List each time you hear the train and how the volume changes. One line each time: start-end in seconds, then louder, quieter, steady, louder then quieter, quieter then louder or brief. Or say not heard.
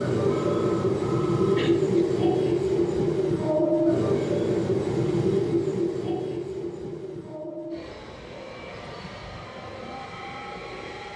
0.0-11.1 quieter.